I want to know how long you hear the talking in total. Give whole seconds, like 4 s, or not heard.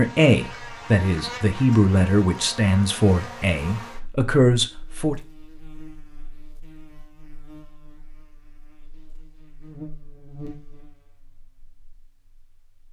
5 s.